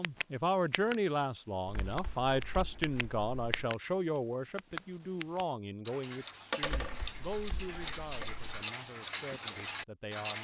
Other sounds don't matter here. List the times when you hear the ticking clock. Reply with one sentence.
The ticking clock can be heard from 0.0 to 3.8 s and from 4.5 to 10.3 s.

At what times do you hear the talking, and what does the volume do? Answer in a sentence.
You can hear the talking from 0.0 to 10.3 s, getting quieter.